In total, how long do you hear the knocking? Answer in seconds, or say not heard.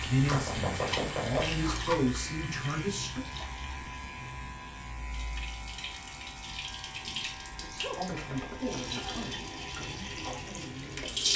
2 s.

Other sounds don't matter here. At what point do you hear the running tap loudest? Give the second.
11 s.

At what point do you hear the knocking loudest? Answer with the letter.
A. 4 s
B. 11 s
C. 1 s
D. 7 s
C.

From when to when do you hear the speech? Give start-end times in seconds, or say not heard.
0.0-3.2, 7.0-11.3.